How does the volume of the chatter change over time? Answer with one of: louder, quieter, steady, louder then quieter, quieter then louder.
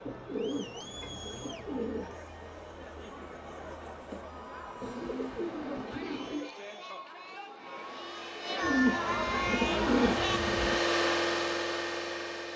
louder.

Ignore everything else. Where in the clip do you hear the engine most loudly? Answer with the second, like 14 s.
11 s.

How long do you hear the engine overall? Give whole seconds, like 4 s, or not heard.
5 s.